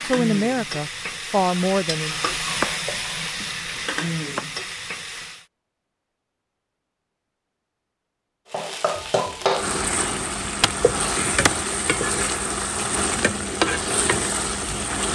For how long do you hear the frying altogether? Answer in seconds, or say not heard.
12 s.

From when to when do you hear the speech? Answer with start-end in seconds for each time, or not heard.
0.0-2.2.